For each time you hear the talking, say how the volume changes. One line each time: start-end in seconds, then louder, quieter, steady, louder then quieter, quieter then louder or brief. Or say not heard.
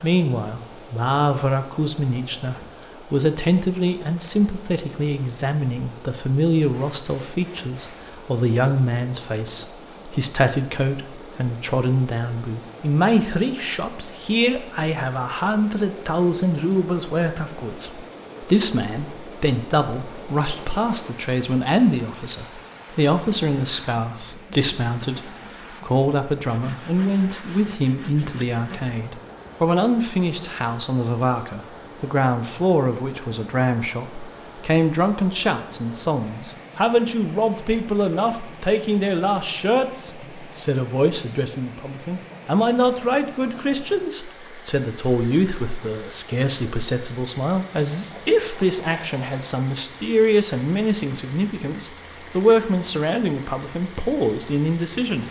0.0-55.2 steady.